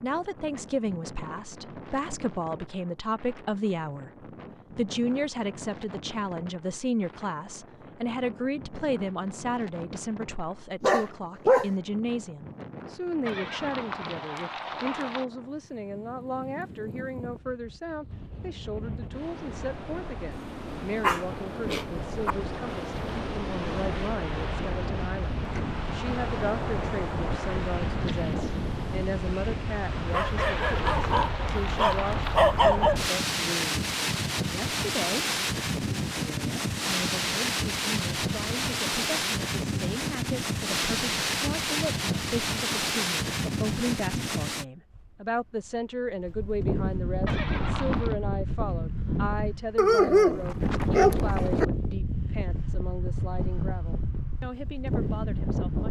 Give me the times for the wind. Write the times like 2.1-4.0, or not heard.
0.0-55.8.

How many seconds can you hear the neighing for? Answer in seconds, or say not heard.
5 s.